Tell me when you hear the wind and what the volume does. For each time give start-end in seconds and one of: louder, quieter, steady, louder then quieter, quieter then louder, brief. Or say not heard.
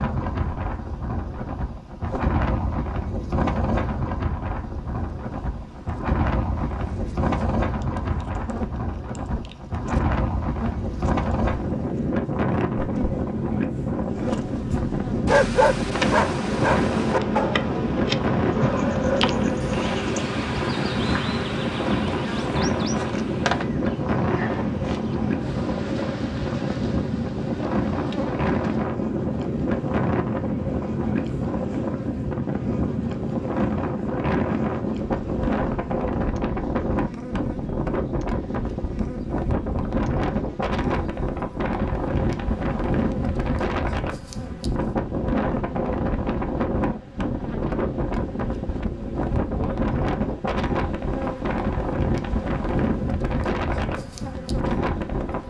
0.0-55.4 steady.